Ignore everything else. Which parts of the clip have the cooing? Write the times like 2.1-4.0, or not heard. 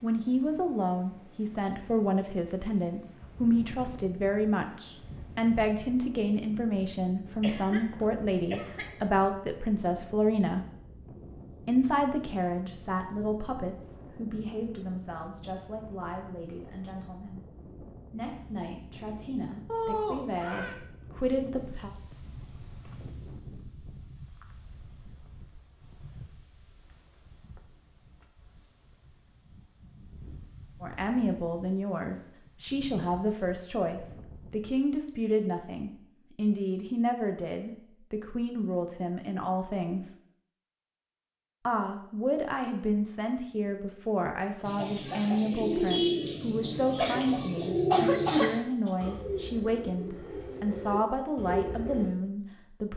44.6-52.1.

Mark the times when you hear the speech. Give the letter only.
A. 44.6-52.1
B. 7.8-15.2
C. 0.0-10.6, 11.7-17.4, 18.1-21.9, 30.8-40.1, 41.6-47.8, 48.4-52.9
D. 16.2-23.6
C.